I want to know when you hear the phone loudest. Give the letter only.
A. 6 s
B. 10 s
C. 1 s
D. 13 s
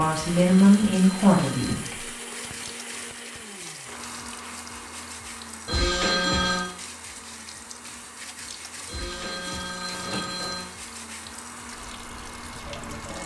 A.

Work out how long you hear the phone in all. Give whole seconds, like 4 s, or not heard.
4 s.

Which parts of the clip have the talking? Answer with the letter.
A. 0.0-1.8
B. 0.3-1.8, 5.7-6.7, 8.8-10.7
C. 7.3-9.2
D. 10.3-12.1
A.